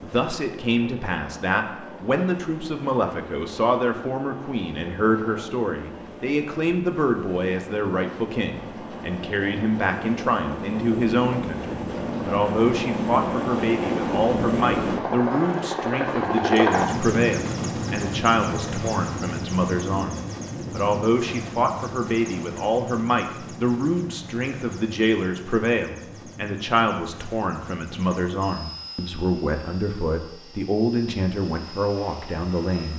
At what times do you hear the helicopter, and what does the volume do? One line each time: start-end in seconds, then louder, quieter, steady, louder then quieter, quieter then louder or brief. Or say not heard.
0.0-32.9 louder then quieter.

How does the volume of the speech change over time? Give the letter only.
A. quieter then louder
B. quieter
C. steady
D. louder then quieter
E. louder
C.